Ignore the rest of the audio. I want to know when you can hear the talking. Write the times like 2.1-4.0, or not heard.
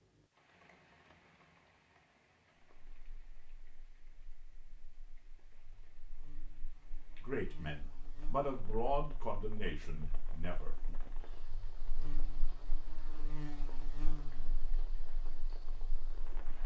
7.2-10.9.